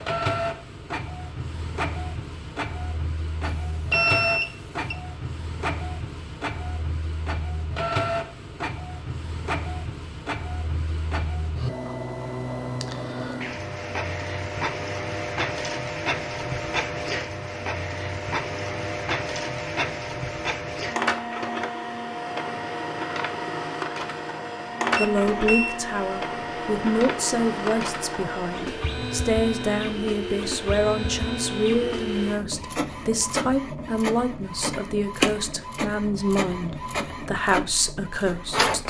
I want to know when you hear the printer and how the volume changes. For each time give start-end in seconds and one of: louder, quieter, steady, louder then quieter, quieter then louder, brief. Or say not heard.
0.0-38.8 steady.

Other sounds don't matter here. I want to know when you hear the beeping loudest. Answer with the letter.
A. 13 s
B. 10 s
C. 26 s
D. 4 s
D.